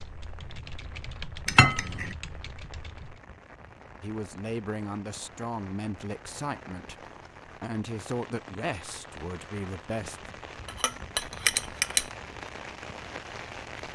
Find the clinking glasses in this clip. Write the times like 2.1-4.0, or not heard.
1.4-2.1, 10.7-12.1.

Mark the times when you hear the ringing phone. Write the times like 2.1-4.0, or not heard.
not heard.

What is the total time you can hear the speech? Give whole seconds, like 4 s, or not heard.
6 s.